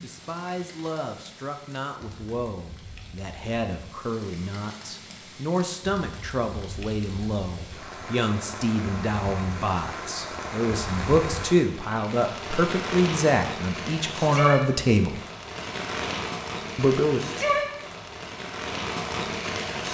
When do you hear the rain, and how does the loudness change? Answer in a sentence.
You can hear the rain from 0.0 to 19.8 s, getting louder.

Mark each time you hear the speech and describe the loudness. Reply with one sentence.
The speech can be heard from 0.0 to 15.2 s, getting louder; and briefly from 16.8 to 17.3 s.